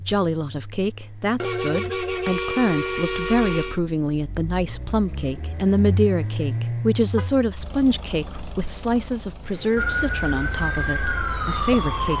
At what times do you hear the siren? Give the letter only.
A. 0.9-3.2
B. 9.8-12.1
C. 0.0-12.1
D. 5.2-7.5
B.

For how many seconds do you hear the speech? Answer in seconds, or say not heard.
12 s.